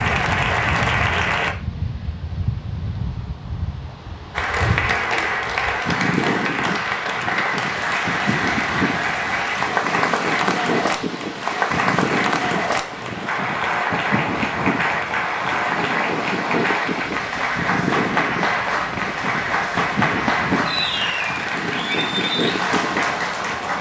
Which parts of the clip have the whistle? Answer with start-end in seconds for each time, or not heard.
not heard.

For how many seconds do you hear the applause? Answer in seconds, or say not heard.
21 s.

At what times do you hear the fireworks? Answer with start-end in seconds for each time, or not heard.
not heard.